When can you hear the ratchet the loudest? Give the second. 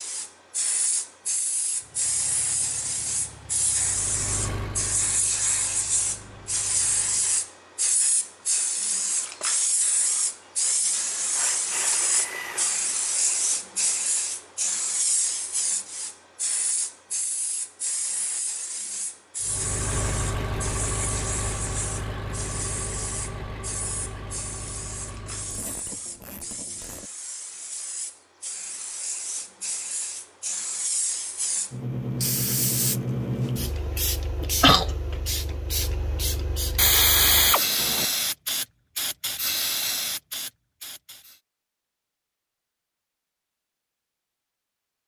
37 s.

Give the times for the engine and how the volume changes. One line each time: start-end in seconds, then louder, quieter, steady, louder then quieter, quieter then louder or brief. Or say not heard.
1.7-7.5 louder then quieter
19.4-25.8 quieter.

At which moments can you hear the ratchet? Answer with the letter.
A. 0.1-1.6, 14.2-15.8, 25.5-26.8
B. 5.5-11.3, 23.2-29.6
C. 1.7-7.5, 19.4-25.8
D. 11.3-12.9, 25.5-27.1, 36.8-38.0
D.